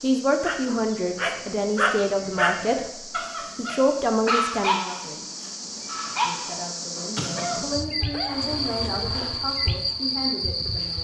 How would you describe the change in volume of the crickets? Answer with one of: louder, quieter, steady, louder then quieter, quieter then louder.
louder.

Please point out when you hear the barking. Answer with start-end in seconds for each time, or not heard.
0.4-9.4.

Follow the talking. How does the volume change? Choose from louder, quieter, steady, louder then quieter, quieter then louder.
quieter.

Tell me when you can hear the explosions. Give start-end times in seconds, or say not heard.
7.2-8.0.